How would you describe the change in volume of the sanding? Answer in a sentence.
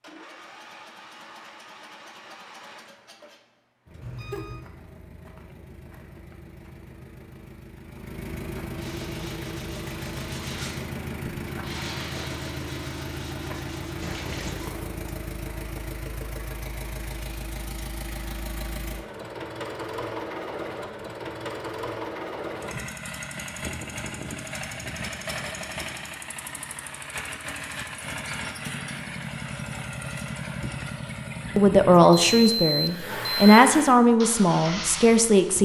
The loudness of the sanding goes up, then down.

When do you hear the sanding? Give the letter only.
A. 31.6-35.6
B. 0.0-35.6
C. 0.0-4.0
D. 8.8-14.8
D.